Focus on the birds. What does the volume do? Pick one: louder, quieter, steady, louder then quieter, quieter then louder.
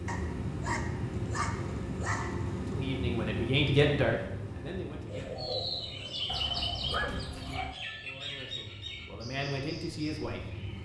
quieter.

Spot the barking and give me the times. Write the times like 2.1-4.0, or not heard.
0.1-2.7, 6.2-7.8.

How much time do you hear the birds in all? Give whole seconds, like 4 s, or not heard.
6 s.